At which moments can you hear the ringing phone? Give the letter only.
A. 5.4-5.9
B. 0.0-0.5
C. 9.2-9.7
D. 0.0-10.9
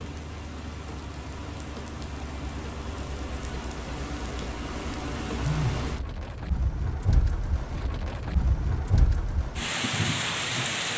A.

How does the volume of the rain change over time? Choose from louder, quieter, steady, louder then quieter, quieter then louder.
louder.